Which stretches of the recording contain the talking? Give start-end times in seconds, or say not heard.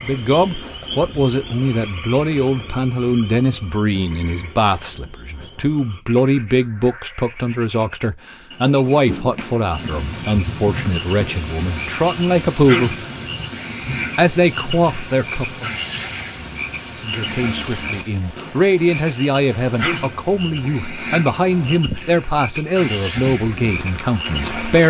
0.0-13.1, 14.2-15.7, 16.9-24.8.